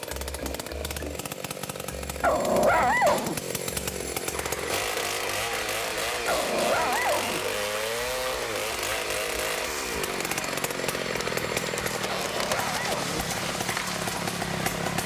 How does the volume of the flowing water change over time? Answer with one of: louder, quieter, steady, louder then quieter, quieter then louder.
steady.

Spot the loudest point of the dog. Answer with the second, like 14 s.
3 s.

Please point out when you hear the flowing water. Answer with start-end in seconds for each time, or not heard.
4.3-15.0.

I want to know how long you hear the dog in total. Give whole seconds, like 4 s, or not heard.
3 s.